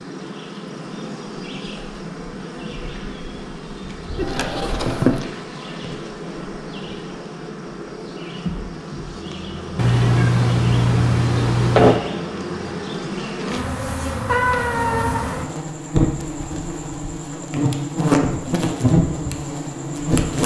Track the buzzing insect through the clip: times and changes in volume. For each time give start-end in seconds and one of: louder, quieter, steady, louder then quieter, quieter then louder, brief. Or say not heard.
0.0-20.4 louder.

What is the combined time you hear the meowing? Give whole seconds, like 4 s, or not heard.
4 s.